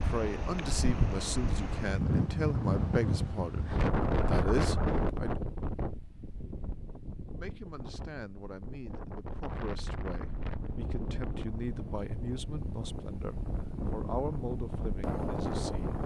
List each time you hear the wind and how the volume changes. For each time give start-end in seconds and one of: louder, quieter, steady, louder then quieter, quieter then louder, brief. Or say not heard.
0.0-16.0 quieter then louder.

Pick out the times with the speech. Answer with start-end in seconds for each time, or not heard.
0.0-5.3, 7.3-16.0.